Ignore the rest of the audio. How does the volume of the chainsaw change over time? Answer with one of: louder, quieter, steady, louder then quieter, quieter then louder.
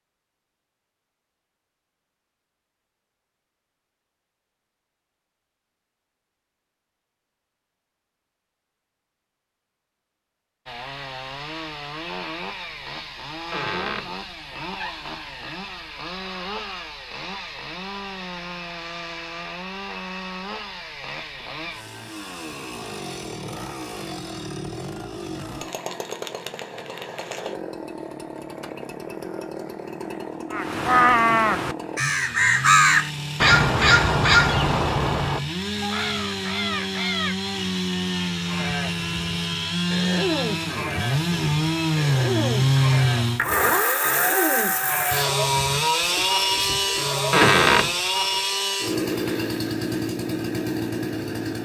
louder.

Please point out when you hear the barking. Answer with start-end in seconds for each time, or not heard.
not heard.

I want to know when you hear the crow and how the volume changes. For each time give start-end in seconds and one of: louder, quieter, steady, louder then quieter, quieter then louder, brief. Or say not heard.
30.5-37.5 quieter.